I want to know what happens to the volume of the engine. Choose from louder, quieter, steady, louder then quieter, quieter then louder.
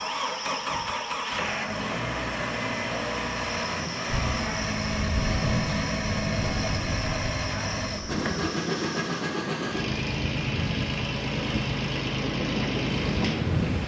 steady.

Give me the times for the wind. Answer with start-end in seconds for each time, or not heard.
4.0-13.8.